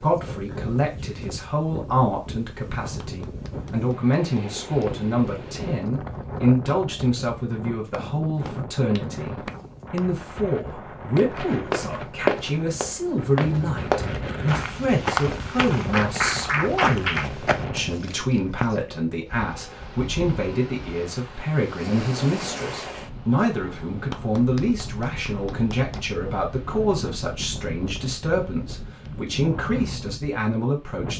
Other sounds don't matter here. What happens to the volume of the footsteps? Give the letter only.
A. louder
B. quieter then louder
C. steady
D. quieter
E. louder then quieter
D.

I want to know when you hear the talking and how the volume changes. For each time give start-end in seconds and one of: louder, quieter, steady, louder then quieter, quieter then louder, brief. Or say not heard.
0.0-31.1 steady.